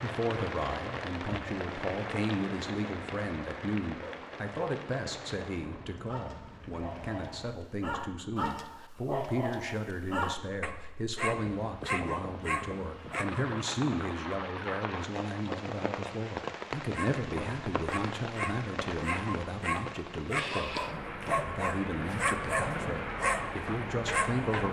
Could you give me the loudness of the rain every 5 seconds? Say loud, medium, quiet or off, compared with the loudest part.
loud, medium, loud, loud, loud.